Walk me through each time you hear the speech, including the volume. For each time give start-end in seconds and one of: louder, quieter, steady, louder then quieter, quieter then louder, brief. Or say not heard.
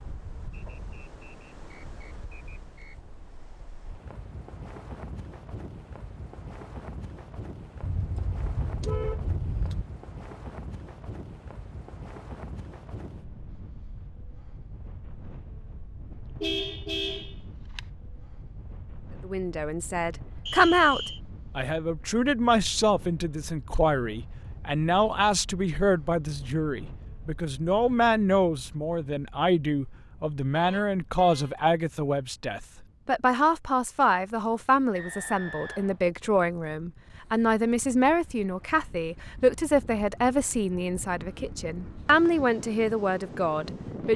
19.2-44.1 steady.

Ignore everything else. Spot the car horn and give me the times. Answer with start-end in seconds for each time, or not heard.
7.8-9.8, 16.4-17.8, 30.5-31.6.